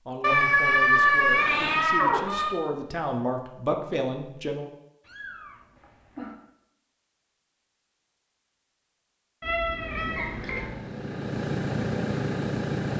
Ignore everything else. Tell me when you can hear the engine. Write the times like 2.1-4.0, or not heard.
9.7-12.9.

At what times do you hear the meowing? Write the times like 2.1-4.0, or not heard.
0.2-2.5, 5.0-6.3, 9.4-10.8.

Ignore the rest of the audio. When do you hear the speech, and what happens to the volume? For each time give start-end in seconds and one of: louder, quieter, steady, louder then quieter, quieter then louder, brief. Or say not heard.
0.1-4.7 louder.